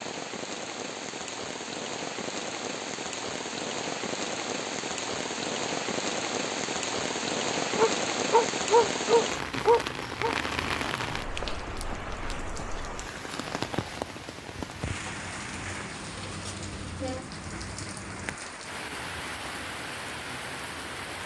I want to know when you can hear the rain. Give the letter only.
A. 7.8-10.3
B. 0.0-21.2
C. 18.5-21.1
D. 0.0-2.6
B.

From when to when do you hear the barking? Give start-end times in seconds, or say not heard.
7.8-10.3.